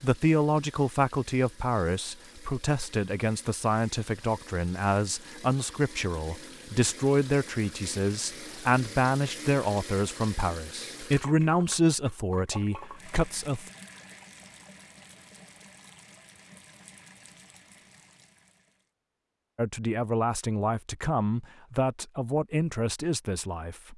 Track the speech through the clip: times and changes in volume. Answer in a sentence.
The speech can be heard from 0.0 to 13.7 s, at a steady volume; and from 19.6 to 23.9 s, at a steady volume.